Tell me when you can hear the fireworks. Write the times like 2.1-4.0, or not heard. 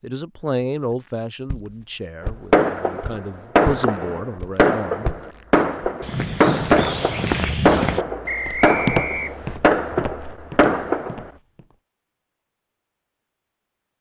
2.5-11.3.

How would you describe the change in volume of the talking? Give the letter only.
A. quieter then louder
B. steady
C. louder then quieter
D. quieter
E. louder
A.